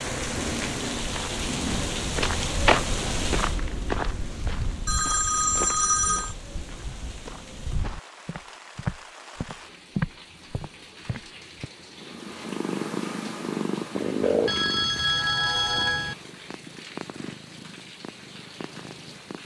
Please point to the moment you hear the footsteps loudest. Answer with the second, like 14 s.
3 s.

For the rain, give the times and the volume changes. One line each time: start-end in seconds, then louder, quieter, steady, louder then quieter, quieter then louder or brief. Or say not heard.
0.0-19.4 quieter.